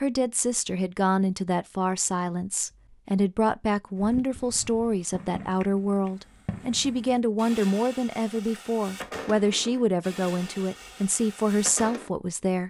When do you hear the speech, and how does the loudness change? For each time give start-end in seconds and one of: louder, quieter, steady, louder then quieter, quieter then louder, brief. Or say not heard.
0.0-12.6 steady.